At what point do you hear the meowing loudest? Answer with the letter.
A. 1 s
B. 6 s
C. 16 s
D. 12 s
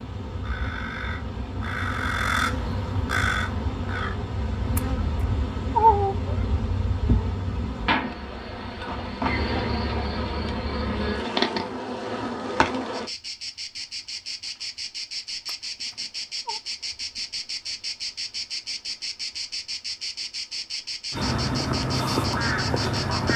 B.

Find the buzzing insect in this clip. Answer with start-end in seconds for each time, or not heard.
0.0-23.3.